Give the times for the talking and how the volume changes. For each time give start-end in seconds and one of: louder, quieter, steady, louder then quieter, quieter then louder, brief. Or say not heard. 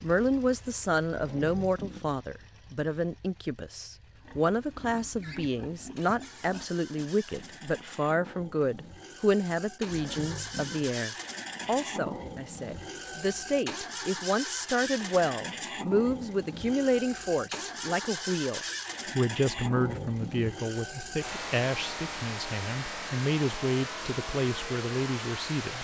0.0-25.7 steady.